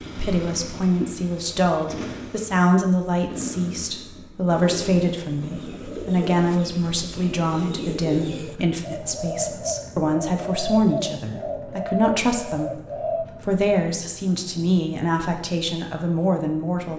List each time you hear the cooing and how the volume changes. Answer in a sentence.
You can hear the cooing from 4.8 to 13.2 s, getting louder.